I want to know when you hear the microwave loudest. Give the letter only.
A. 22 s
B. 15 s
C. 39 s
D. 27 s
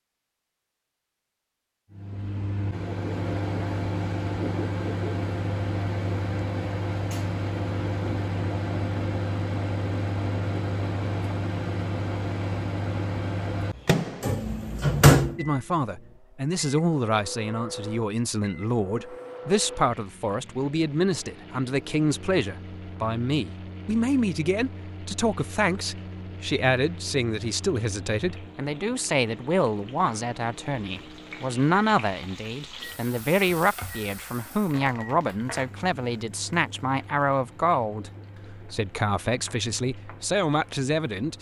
B.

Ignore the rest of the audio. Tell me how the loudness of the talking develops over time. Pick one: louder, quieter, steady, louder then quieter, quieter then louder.
steady.